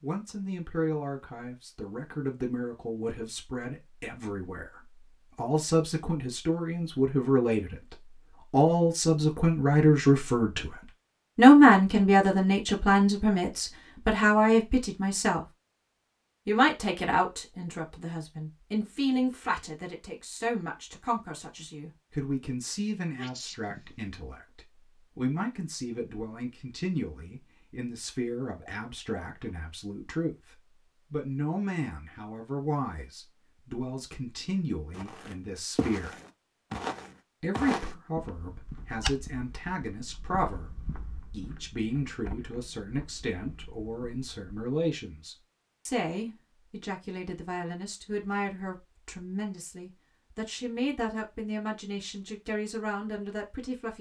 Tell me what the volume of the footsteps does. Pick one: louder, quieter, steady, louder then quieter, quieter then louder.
quieter.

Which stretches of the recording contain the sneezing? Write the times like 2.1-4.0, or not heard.
23.1-24.1.